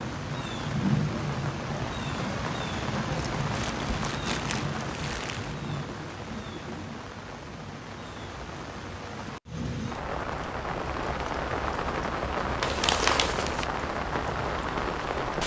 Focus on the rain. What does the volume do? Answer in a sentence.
The volume of the rain goes down, then up.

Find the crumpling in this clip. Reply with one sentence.
You can hear the crumpling from 3.4 to 5.5 s and from 12.6 to 13.7 s.